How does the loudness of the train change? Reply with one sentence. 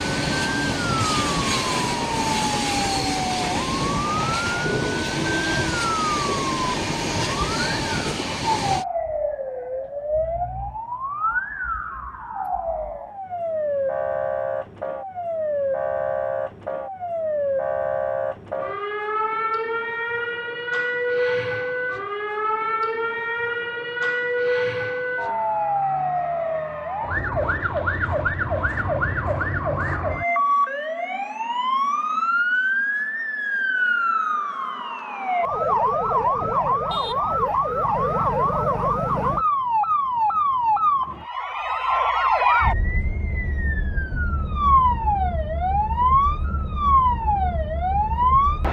The loudness of the train stays about the same.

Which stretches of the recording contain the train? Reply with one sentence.
You can hear the train from 0.0 to 8.8 s.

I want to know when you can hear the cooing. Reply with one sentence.
You can't hear the cooing here.